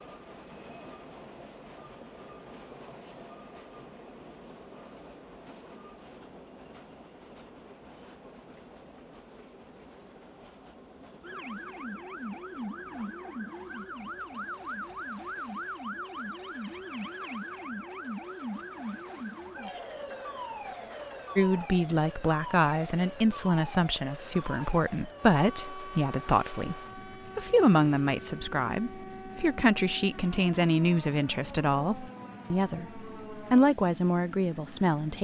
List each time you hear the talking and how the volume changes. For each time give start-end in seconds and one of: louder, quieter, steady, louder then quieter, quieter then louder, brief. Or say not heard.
21.4-35.1 steady.